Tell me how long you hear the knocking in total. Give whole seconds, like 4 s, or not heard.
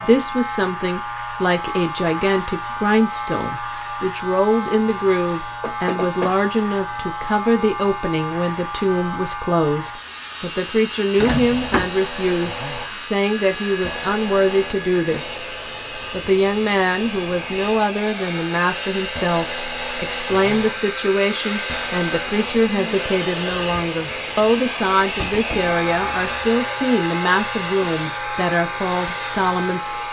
3 s.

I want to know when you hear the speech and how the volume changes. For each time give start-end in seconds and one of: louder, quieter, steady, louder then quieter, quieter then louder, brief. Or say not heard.
0.0-15.4 steady
16.1-30.0 steady.